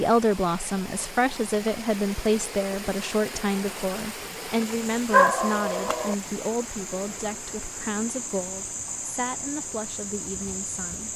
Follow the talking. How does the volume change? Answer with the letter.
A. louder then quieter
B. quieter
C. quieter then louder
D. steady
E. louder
B.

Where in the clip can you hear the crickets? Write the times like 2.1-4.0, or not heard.
4.6-11.1.